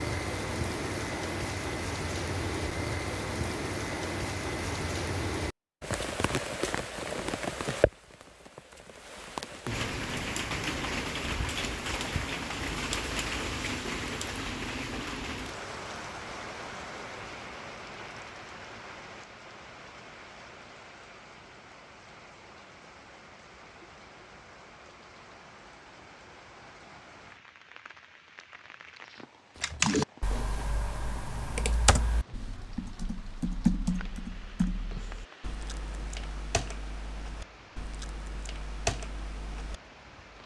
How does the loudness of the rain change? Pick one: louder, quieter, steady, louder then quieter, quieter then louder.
quieter.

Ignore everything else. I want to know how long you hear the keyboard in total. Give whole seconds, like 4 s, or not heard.
10 s.